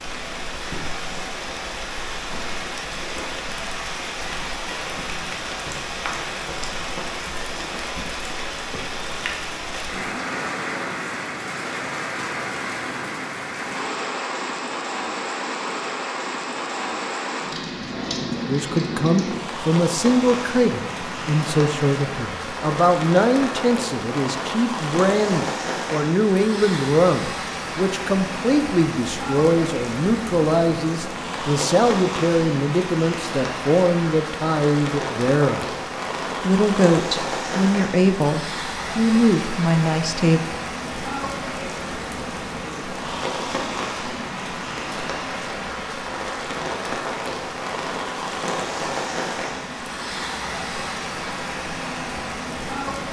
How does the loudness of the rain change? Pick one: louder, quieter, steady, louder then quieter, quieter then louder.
steady.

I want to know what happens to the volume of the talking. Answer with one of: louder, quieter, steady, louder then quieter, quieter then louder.
steady.